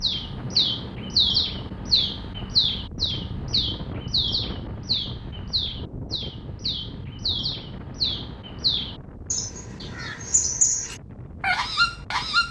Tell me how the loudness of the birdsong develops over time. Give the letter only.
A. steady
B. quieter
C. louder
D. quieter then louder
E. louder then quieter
D.